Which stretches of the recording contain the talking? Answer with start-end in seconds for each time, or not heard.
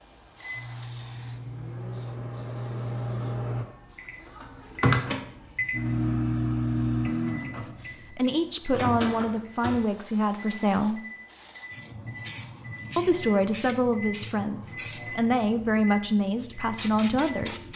7.3-11.0, 12.9-17.7.